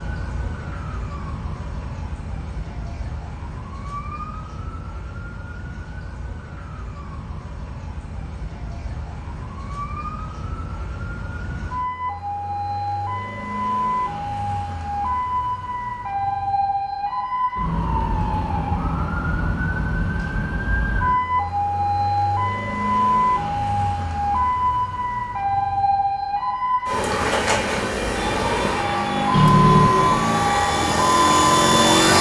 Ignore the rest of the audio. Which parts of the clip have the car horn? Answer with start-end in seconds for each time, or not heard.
29.3-30.2.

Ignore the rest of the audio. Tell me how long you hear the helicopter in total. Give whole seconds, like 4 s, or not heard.
4 s.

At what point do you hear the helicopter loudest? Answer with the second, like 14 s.
32 s.